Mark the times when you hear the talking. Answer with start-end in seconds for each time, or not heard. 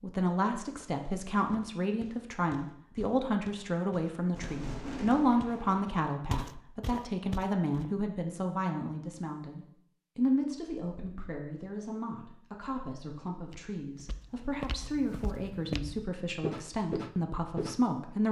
0.0-18.2.